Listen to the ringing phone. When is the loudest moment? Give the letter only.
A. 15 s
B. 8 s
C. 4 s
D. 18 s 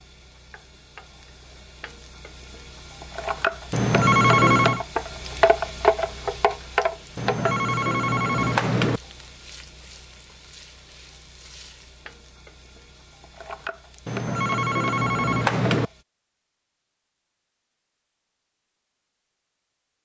C.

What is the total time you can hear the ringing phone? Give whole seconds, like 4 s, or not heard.
5 s.